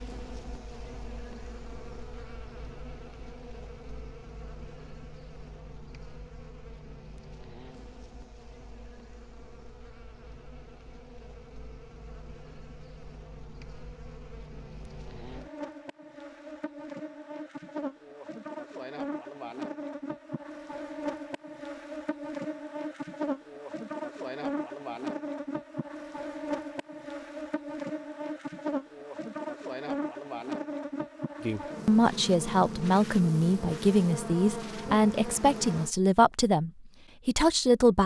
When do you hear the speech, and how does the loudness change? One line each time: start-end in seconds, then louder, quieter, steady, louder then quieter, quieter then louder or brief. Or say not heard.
31.4-38.0 steady.